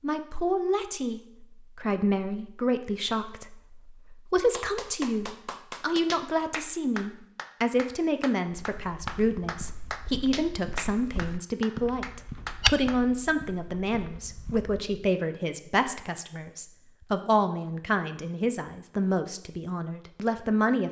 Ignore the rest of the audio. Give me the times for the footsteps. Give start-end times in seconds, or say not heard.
8.4-14.8.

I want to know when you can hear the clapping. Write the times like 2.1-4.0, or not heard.
4.5-12.9.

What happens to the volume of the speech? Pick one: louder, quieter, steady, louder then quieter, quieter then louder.
steady.